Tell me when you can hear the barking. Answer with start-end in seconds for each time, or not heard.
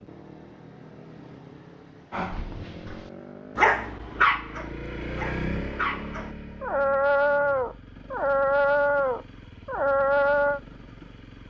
2.1-10.6.